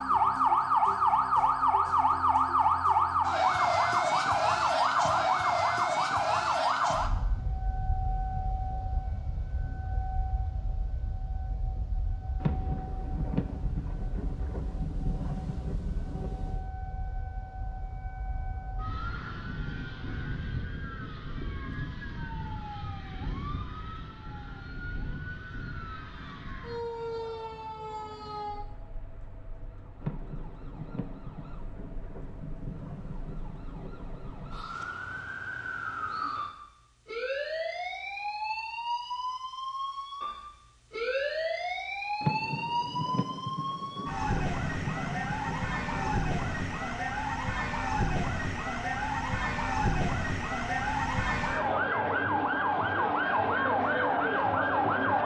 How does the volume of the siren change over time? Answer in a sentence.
The volume of the siren goes down, then up.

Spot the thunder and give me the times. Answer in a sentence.
The thunder can be heard from 12.4 to 16.7 s, from 30.0 to 34.9 s and from 42.2 to 46.8 s.